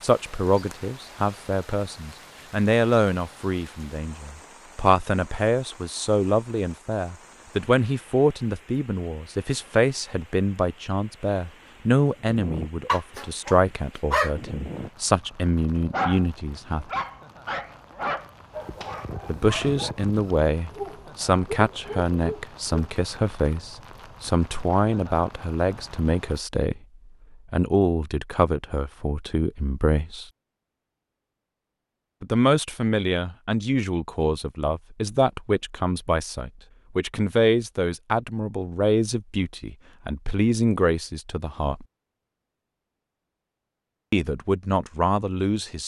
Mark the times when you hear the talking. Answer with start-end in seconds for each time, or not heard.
0.0-16.9, 19.2-26.8, 27.5-30.2, 32.2-41.9, 44.1-45.8.